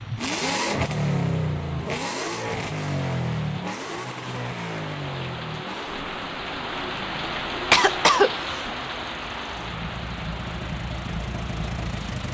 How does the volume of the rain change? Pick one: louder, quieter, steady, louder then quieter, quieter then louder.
louder then quieter.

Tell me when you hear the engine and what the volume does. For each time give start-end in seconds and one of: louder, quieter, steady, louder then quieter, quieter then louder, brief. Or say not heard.
0.0-12.2 quieter then louder.